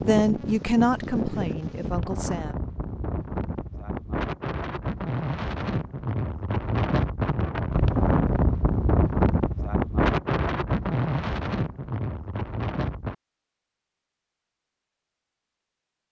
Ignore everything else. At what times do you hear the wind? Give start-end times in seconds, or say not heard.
0.0-13.2.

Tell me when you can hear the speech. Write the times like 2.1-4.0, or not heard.
0.1-2.5.